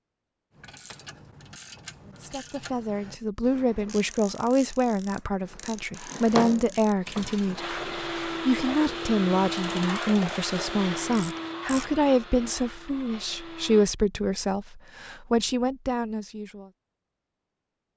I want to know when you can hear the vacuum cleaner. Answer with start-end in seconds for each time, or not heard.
7.5-13.9.